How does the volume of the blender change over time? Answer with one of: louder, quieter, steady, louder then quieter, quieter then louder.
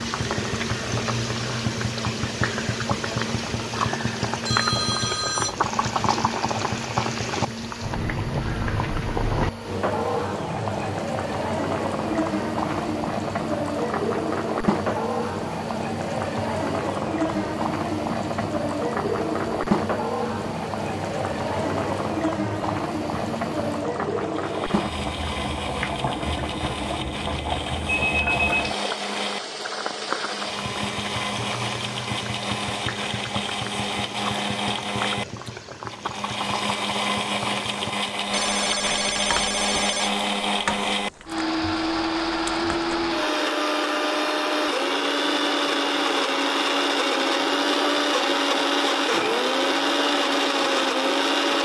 louder.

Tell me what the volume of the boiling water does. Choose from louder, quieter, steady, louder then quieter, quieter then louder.
quieter.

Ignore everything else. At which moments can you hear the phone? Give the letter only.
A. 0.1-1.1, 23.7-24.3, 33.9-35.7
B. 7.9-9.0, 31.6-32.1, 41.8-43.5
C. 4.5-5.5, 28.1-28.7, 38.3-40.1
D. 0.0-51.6
C.